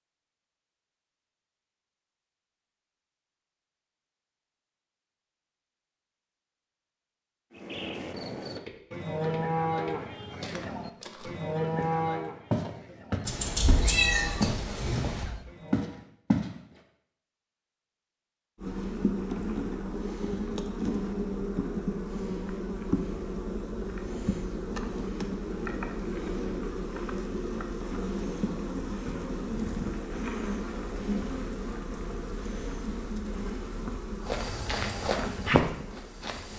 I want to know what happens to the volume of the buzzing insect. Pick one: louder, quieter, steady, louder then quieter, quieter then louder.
steady.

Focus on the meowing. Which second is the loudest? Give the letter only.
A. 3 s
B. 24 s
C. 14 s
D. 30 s
C.